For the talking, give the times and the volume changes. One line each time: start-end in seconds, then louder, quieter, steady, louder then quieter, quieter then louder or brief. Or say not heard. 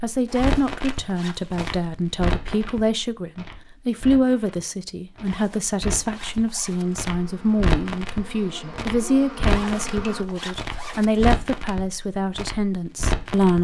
0.0-13.6 steady.